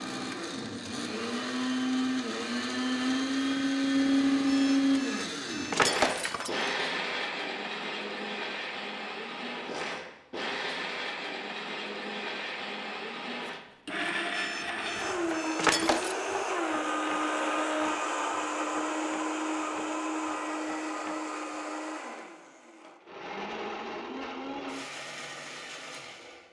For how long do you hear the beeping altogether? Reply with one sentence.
You can hear the beeping for 4 seconds altogether.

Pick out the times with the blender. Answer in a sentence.
The blender can be heard from 0.0 to 26.4 s.